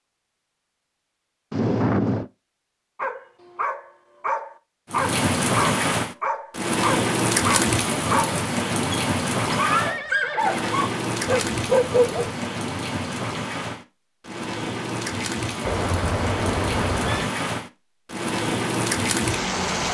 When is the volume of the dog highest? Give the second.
12 s.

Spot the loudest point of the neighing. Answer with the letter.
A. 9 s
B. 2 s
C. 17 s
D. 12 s
B.